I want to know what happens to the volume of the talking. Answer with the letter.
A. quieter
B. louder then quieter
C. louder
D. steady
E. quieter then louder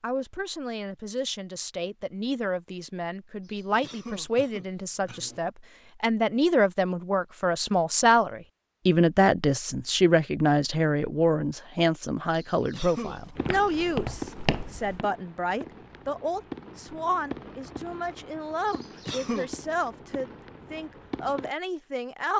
B.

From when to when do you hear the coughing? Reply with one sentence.
You can hear the coughing from 3.4 to 5.4 s, from 12.3 to 13.3 s and from 18.6 to 19.5 s.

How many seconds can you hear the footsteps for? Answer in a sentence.
You can hear the footsteps for 2 seconds altogether.